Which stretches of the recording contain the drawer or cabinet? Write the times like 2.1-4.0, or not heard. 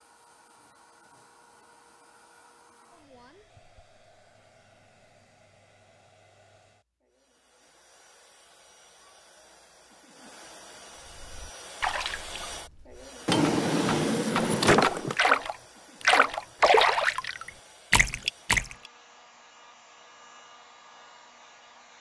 13.2-15.2.